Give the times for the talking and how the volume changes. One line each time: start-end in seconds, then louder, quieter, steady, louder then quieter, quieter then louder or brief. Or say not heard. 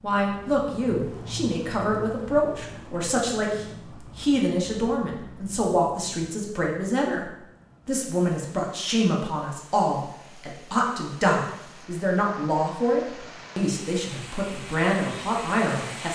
0.0-16.0 steady.